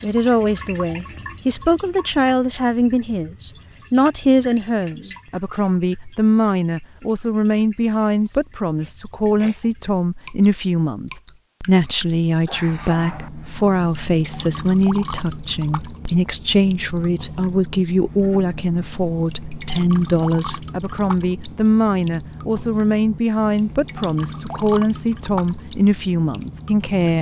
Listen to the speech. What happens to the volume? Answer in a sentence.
The loudness of the speech stays about the same.